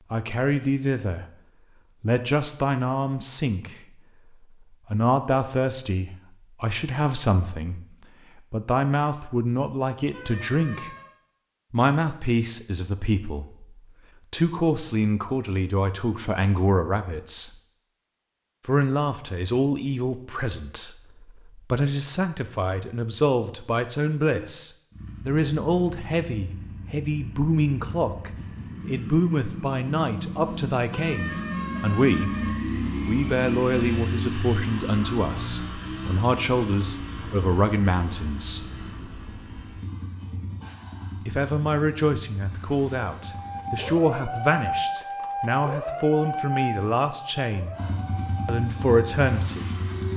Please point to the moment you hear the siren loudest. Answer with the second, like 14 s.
45 s.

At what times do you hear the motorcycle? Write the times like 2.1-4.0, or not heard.
24.9-44.0, 47.7-50.1.